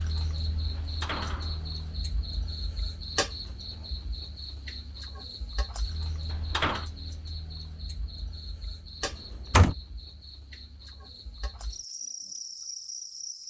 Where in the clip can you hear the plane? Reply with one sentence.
The plane can't be heard in this clip.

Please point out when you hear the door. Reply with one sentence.
The door can be heard from 0.8 to 1.8 s, from 6.3 to 6.9 s and from 9.0 to 9.8 s.